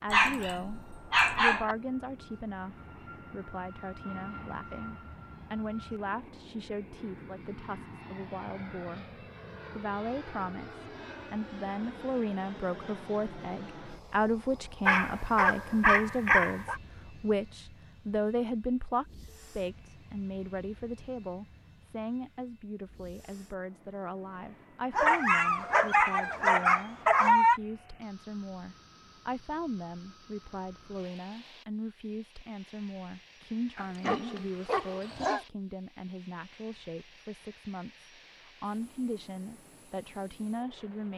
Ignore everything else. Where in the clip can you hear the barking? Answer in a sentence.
The barking can be heard from 0.1 to 1.8 s, from 14.8 to 16.8 s, from 24.9 to 27.6 s and from 33.8 to 35.5 s.